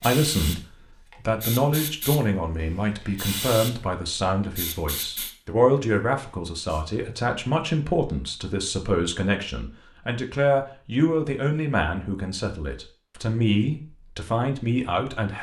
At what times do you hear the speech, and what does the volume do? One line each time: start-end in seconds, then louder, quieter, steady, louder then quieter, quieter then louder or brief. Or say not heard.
0.0-15.3 steady.